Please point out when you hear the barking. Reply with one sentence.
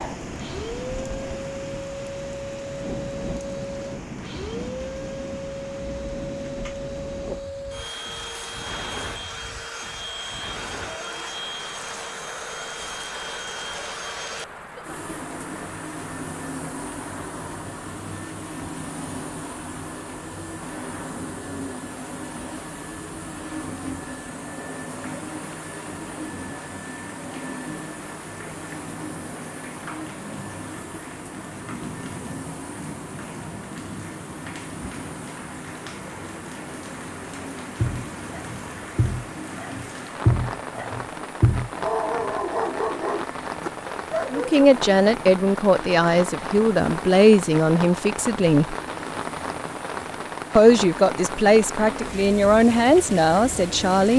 You can hear the barking from 37.8 to 44.6 s.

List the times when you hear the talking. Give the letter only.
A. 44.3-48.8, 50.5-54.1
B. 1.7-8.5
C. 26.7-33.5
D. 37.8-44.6
A.